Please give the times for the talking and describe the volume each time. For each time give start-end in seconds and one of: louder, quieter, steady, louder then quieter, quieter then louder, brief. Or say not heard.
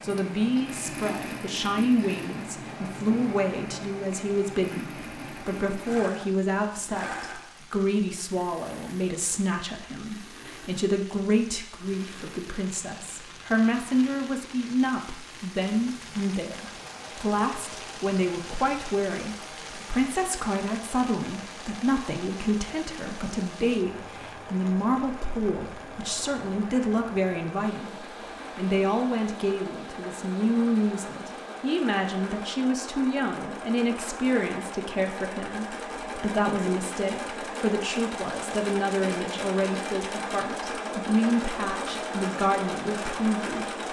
0.0-43.8 steady.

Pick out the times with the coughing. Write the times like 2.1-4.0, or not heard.
not heard.